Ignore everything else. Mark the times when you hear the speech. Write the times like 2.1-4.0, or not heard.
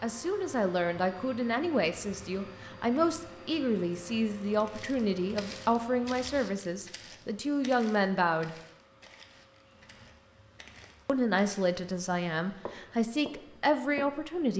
0.0-8.6, 11.1-14.5.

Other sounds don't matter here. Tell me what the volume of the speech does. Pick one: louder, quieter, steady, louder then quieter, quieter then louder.
steady.